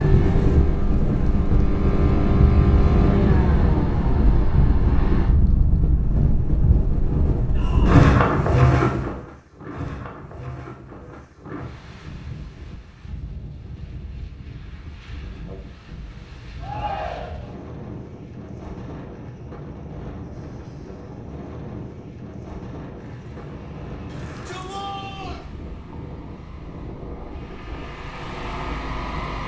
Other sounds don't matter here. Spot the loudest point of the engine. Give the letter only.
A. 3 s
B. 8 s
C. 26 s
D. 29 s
A.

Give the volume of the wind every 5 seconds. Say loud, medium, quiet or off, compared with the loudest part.
loud, loud, quiet, quiet, quiet, quiet.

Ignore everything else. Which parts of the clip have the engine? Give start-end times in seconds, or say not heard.
0.0-5.3, 22.9-29.4.